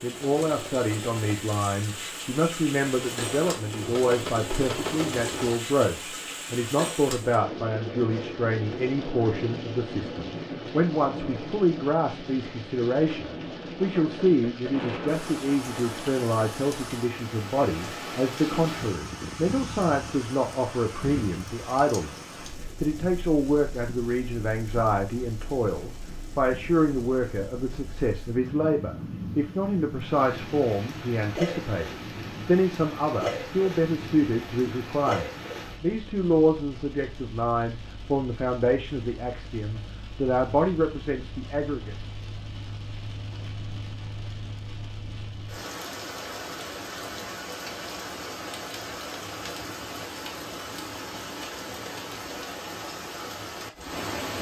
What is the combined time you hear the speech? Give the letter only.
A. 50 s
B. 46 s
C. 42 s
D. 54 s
C.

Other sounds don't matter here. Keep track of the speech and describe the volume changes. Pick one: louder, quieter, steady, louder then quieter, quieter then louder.
steady.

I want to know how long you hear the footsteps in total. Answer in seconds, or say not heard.
not heard.